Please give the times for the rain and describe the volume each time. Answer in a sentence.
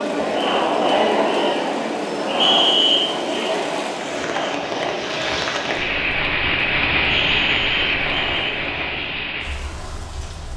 You can hear the rain from 0.0 to 10.5 s, getting louder then quieter.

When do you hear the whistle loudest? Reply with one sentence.
The volume of the whistle peaks at 3 seconds.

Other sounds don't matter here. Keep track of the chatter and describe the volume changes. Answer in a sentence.
The loudness of the chatter goes down.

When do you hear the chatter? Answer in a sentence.
You can hear the chatter from 0.0 to 9.2 s.